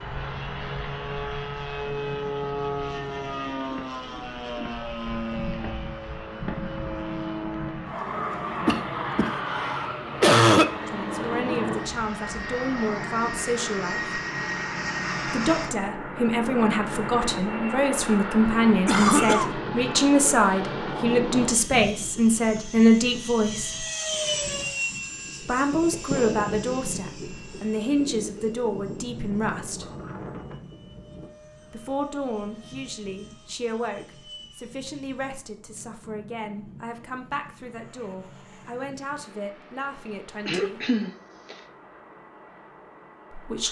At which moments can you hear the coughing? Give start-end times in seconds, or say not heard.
8.7-10.7, 18.9-19.6, 40.5-41.5.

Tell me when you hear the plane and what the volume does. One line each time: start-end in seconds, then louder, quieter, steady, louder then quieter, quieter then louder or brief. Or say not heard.
0.0-43.6 quieter.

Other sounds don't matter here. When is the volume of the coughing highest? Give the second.
10 s.